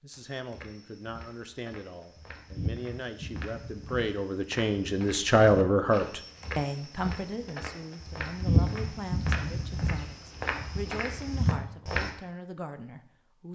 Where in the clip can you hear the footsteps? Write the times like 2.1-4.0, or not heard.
0.1-12.1.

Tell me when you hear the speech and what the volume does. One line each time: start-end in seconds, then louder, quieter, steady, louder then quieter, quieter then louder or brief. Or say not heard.
0.0-13.4 louder then quieter.